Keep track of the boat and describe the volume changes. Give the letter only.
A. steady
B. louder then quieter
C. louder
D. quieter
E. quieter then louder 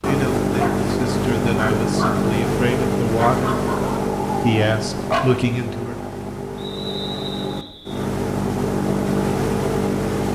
E.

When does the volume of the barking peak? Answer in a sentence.
The loudest moment of the barking is at 5 seconds.